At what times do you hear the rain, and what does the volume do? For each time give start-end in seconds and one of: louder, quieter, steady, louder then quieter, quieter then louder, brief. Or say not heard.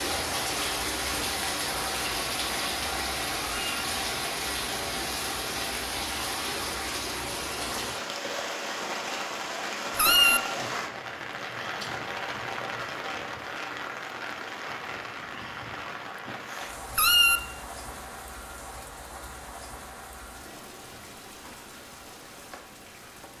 0.0-23.3 quieter.